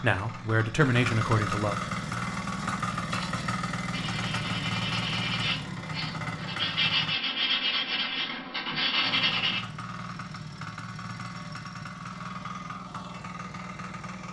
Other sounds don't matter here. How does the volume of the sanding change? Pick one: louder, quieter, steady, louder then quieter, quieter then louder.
louder.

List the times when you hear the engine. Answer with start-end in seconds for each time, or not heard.
0.0-7.2, 9.0-14.2.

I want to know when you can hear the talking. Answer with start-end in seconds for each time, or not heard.
0.0-1.8.